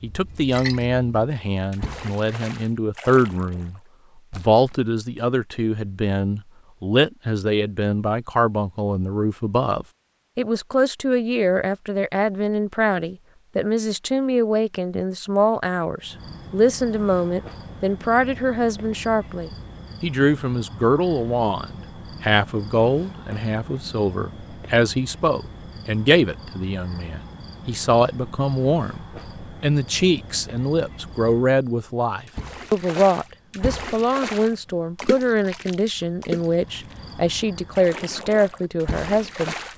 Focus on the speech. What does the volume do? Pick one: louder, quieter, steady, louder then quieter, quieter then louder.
steady.